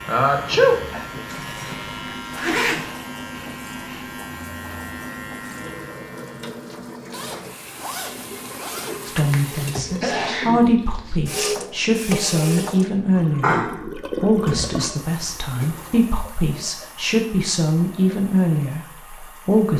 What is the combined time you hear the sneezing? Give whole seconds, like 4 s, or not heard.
3 s.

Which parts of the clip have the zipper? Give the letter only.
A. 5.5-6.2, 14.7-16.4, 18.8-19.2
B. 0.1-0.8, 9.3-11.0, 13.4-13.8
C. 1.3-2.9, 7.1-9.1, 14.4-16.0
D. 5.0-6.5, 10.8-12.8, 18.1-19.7
C.